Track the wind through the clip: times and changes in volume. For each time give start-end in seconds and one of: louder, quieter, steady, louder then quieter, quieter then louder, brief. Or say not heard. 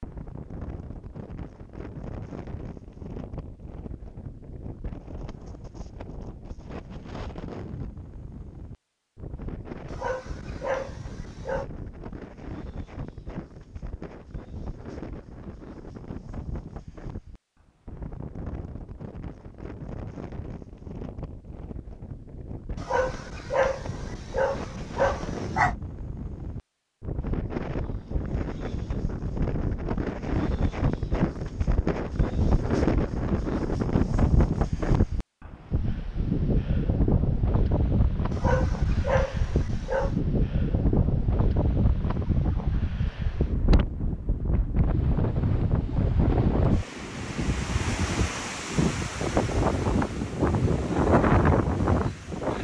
0.0-52.5 louder.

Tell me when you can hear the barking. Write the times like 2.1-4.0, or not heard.
9.9-11.7, 22.8-25.8, 38.3-40.1.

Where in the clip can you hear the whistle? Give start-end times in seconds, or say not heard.
not heard.